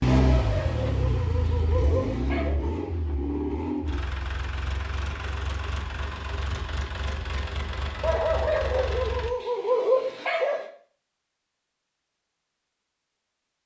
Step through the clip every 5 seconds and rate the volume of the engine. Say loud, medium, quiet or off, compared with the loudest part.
loud, medium, off.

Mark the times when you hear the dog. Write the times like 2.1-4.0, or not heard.
0.1-2.6, 8.0-10.7.